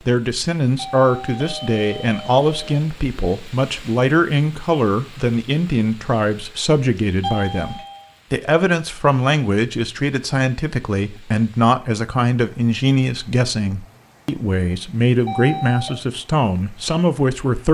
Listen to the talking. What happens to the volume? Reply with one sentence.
The loudness of the talking stays about the same.